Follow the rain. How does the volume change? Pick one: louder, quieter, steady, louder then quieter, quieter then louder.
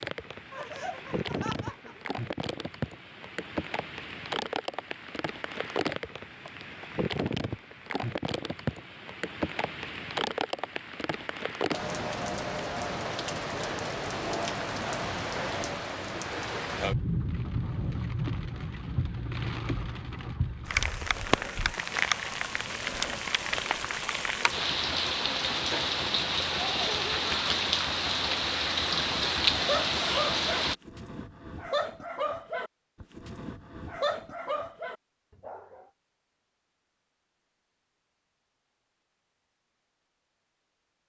louder.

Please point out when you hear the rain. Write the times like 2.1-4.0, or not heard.
0.0-30.8.